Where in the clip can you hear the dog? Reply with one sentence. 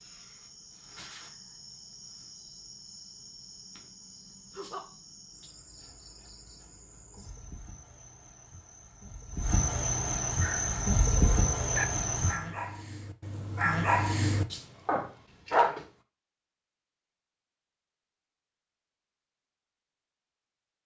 The dog can be heard from 10.4 to 15.8 s.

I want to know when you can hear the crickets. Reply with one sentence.
You can hear the crickets from 0.0 to 12.4 s.